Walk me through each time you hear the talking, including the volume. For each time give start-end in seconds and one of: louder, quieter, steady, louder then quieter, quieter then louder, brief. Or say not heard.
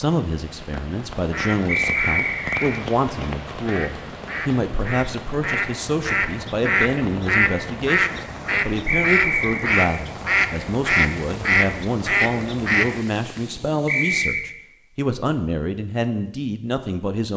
0.0-17.3 steady.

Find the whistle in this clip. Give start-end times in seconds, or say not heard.
1.6-2.7, 8.8-9.8, 13.8-14.4.